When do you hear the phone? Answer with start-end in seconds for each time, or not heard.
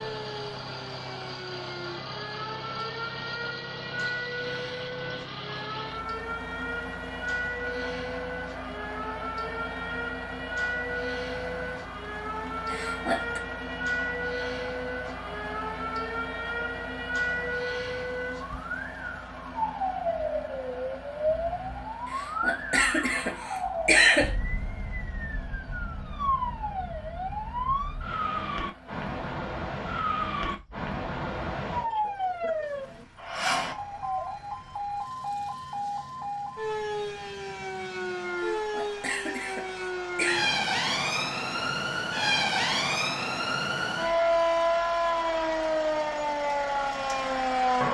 not heard.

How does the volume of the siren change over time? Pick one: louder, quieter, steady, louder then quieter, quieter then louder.
louder.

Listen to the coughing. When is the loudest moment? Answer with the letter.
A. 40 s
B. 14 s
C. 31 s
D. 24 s
D.